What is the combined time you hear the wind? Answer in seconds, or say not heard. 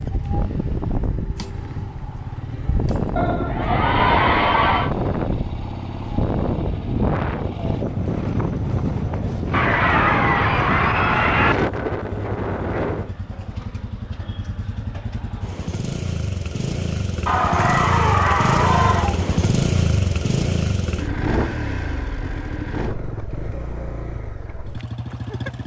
13 s.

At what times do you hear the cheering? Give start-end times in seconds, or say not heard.
3.1-5.0, 9.5-11.6, 17.2-19.2.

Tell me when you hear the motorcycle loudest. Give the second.
20 s.